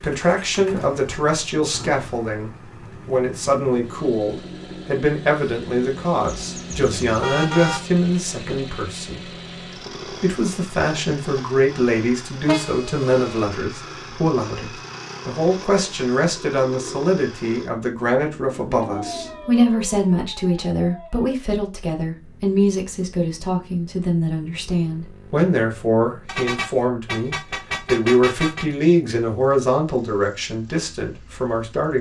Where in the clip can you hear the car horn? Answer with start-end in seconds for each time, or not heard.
6.2-7.8, 12.4-13.5, 26.2-28.6.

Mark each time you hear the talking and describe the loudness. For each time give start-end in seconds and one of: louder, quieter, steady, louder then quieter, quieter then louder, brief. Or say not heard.
0.0-9.4 steady
10.1-31.9 steady.